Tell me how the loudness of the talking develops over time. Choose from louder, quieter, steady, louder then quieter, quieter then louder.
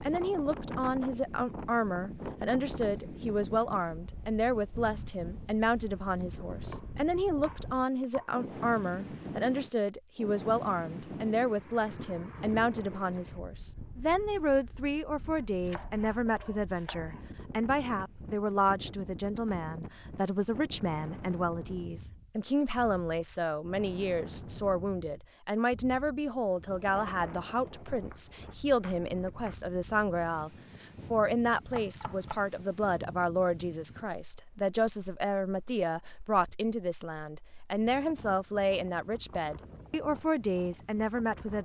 steady.